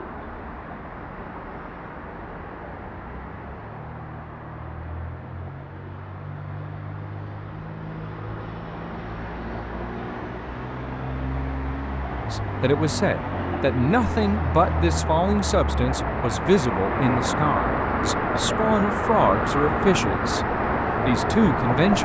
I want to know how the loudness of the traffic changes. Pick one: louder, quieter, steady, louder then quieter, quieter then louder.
louder.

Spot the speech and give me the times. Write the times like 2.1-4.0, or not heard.
12.3-20.4, 21.1-21.9.